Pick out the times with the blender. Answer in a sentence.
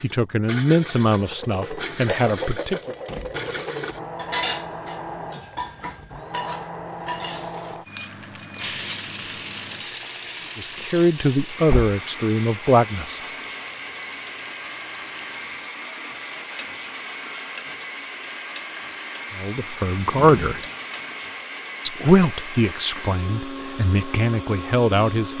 The blender can be heard from 0.0 to 25.3 s.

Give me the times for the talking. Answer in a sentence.
The talking can be heard from 0.0 to 3.0 s, from 10.6 to 13.2 s, from 19.4 to 20.6 s and from 21.9 to 25.3 s.